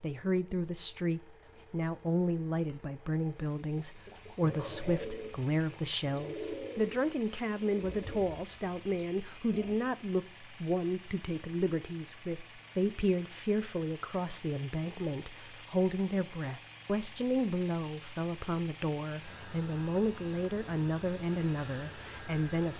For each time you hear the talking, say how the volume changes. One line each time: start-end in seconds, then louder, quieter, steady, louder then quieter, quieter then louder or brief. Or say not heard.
0.0-22.7 steady.